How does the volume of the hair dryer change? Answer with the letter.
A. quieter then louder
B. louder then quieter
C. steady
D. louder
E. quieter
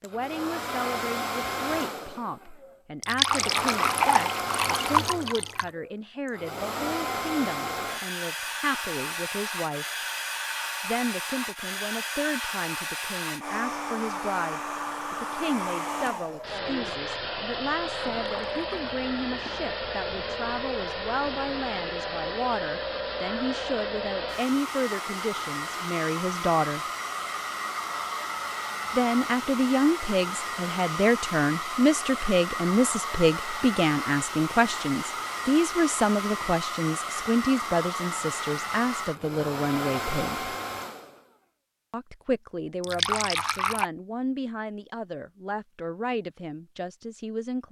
C.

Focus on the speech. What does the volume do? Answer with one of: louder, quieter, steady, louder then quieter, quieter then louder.
louder then quieter.